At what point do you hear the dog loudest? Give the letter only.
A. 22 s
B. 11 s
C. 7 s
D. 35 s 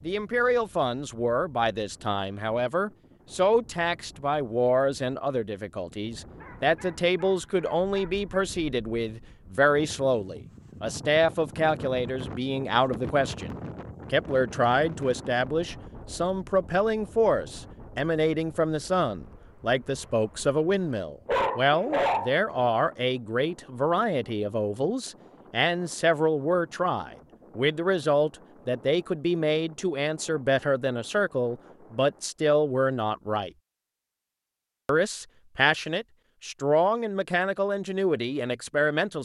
A.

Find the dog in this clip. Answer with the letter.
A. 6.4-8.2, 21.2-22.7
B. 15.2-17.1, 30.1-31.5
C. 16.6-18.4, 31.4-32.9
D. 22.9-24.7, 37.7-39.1
A.